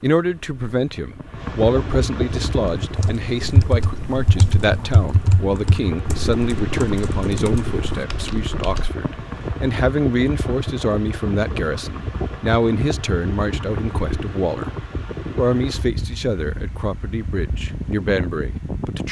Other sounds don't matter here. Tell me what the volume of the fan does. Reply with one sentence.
The loudness of the fan stays about the same.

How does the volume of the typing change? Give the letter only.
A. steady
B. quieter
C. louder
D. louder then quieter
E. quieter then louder
B.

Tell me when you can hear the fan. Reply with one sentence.
The fan can be heard from 0.0 to 19.0 s.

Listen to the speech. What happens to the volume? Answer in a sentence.
The volume of the speech stays about the same.